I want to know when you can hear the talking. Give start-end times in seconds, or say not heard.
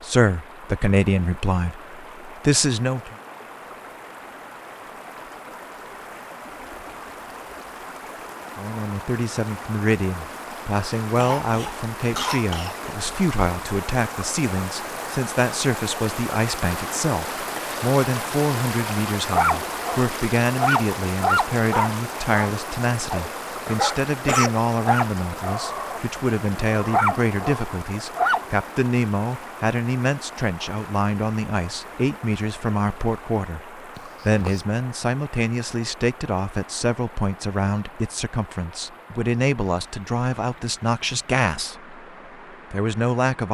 0.0-3.1, 8.6-42.0, 42.7-43.4.